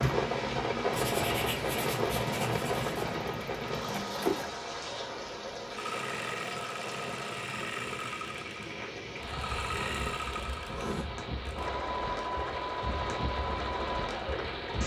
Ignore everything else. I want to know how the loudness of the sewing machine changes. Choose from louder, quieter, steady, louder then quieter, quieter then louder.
steady.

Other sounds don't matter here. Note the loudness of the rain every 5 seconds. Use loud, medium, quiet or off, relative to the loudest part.
loud, medium, medium.